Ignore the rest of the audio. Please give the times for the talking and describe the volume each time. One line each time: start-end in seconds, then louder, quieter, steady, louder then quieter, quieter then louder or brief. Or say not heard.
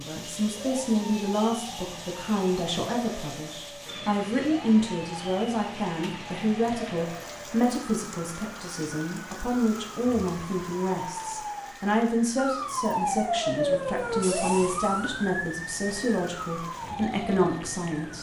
0.0-18.1 steady.